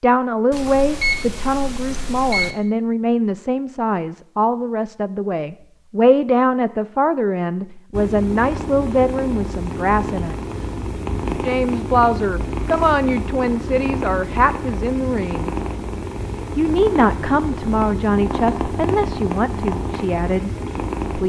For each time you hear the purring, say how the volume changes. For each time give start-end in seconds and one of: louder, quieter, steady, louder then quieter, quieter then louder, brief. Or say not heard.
7.9-21.2 steady.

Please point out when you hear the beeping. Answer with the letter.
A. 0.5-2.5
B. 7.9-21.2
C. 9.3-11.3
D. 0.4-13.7
A.